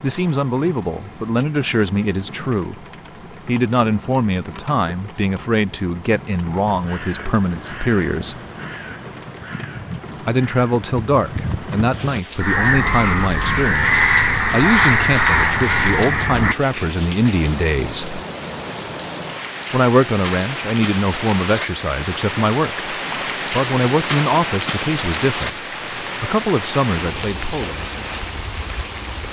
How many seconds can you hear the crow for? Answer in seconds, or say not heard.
10 s.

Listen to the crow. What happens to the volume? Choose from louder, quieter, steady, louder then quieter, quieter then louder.
louder.